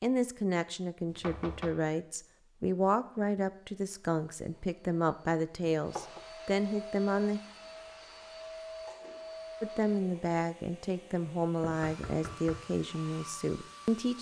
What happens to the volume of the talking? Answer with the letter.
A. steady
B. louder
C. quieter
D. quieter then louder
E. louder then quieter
A.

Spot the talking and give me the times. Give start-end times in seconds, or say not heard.
0.0-7.4, 9.6-14.1.